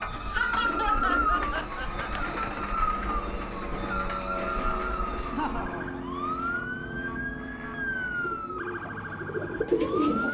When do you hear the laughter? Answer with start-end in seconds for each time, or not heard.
0.1-2.0, 5.3-5.9.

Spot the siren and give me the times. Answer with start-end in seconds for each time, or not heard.
0.0-10.3.